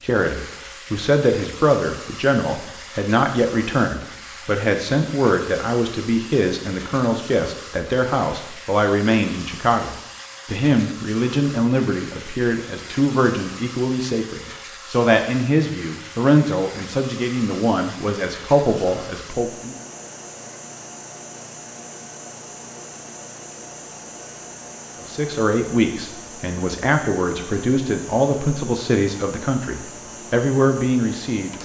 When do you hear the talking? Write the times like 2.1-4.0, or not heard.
0.0-19.8, 25.1-31.5.